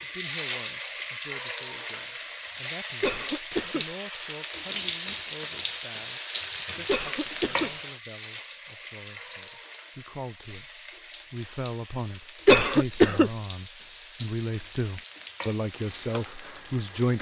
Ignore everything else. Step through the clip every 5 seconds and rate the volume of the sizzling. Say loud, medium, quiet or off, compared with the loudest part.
loud, loud, medium, medium.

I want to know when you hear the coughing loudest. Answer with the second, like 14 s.
13 s.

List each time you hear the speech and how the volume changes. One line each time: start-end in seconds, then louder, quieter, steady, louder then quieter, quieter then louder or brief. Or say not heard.
0.0-17.1 louder.